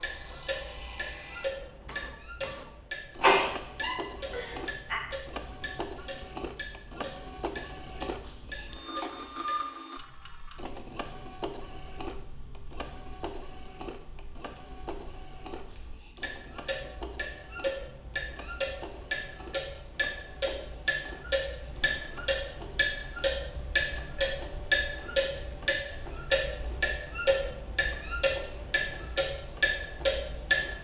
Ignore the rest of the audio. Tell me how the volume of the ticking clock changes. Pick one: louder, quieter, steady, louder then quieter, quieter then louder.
quieter then louder.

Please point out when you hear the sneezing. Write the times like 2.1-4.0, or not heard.
3.2-5.0.